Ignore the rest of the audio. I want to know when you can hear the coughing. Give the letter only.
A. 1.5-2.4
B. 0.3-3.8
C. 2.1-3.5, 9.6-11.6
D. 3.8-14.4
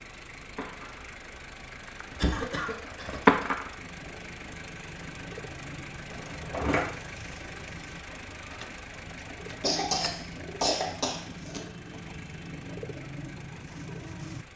C.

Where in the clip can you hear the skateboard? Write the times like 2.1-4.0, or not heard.
0.3-3.8.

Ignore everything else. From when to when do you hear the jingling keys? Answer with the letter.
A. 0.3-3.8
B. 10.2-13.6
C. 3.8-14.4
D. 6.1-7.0
D.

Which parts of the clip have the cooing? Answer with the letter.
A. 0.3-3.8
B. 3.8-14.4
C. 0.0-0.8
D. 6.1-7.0
B.